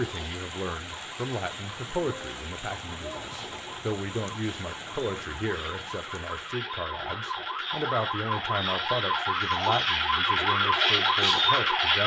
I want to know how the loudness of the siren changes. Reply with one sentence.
The volume of the siren goes up.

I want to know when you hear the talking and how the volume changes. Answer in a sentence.
You can hear the talking from 0.0 to 12.0 s, at a steady volume.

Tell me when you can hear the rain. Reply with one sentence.
You can hear the rain from 0.0 to 6.5 s.